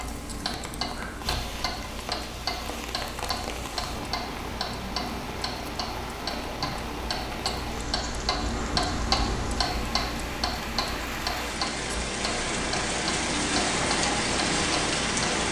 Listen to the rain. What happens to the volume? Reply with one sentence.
The volume of the rain goes up.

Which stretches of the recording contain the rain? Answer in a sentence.
The rain can be heard from 0.0 to 15.4 s.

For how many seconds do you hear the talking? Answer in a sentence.
You can't hear the talking here.